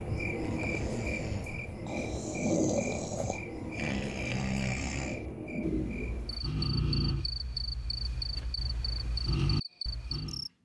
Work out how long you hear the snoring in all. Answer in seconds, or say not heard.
10 s.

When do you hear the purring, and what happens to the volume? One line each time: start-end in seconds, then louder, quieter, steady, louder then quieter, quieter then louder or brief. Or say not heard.
not heard.